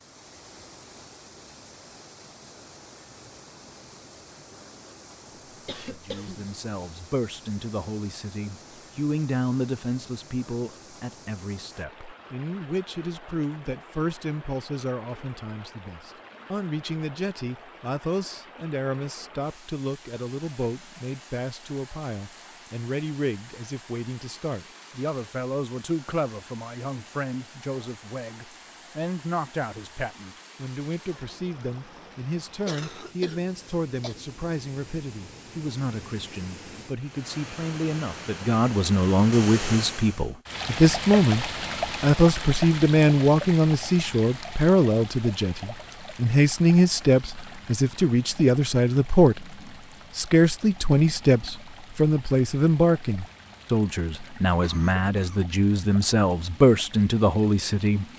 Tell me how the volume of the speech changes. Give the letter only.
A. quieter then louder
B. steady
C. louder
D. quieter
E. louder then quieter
C.